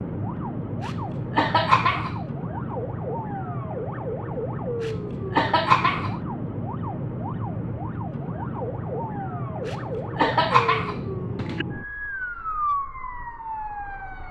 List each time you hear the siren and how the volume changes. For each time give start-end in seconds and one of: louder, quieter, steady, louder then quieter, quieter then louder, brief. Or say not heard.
0.0-14.2 steady.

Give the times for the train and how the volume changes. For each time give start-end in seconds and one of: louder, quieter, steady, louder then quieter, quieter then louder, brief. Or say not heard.
not heard.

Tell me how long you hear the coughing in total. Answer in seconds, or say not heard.
5 s.